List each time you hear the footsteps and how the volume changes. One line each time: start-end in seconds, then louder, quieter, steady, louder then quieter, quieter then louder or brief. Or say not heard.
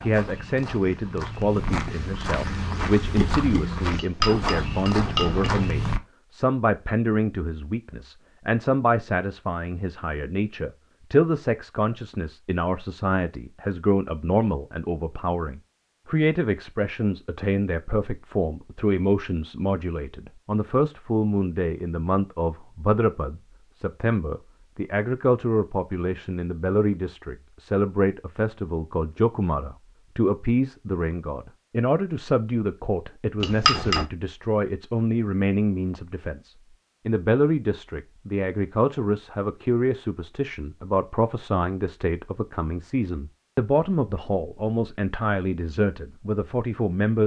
0.0-6.0 louder.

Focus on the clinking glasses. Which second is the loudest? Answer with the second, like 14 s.
34 s.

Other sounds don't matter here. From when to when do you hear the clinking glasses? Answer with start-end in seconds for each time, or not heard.
4.0-5.8, 33.4-34.0.